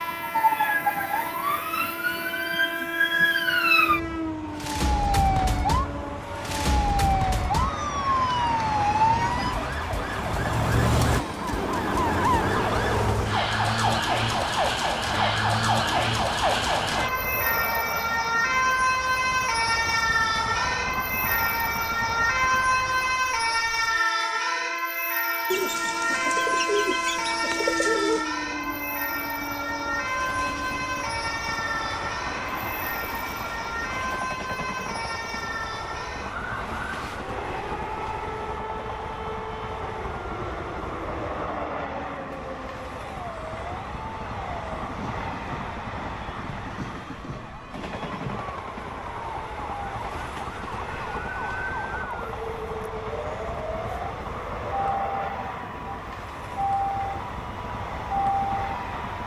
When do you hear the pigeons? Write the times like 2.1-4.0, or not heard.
25.5-28.3.